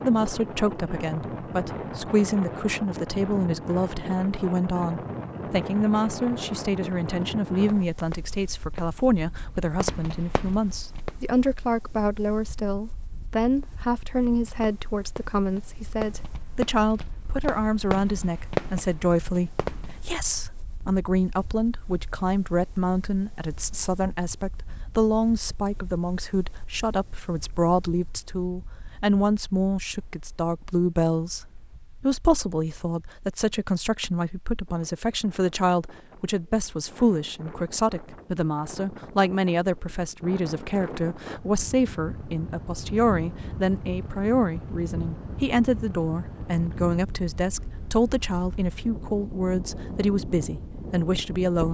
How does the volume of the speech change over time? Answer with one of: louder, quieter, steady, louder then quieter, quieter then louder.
steady.